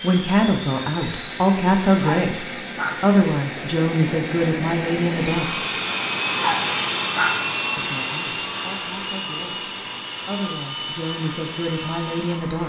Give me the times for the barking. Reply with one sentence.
You can hear the barking from 2.0 to 3.1 s and from 6.4 to 7.5 s.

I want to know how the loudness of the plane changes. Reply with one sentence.
The volume of the plane goes up, then down.